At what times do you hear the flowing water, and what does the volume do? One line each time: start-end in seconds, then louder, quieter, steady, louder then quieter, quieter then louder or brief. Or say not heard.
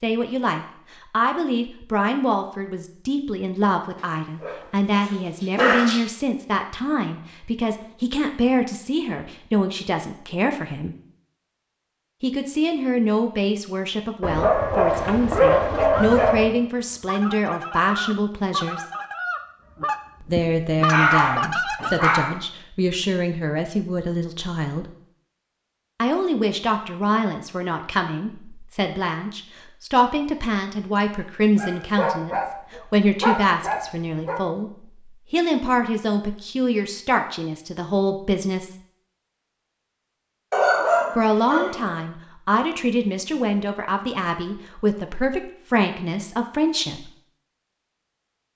not heard.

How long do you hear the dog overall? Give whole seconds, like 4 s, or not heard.
9 s.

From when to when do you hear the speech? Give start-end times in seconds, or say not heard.
0.0-10.9, 12.2-18.9, 20.2-24.9, 26.0-38.8, 41.1-47.1.